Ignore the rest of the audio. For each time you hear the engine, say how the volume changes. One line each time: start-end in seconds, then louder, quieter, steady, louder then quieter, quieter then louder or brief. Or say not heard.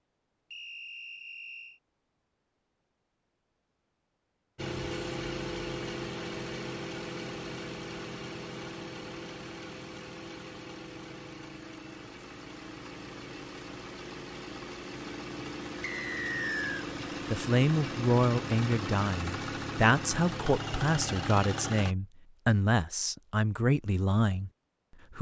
4.5-21.9 quieter then louder.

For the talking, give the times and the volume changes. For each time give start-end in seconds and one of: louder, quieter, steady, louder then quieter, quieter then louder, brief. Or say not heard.
17.3-24.5 steady.